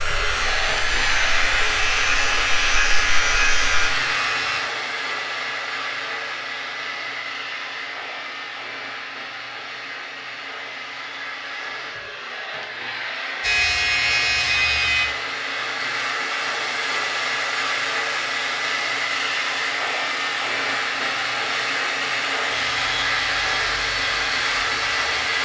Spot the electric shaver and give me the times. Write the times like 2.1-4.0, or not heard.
0.0-4.6, 13.4-15.1, 22.5-25.3.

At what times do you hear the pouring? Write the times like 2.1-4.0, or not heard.
not heard.